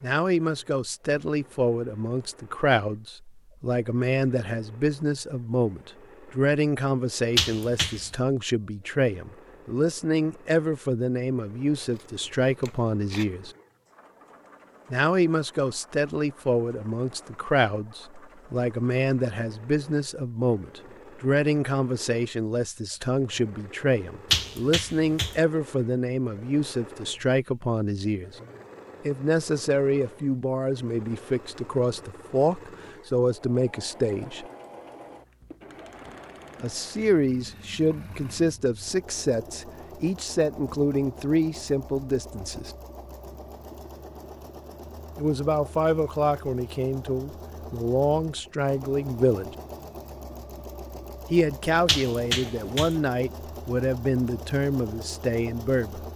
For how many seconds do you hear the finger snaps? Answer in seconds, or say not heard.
3 s.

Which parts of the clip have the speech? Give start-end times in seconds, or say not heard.
0.0-13.5, 14.9-28.4, 29.1-34.5, 36.6-42.8, 45.1-49.5, 51.3-56.0.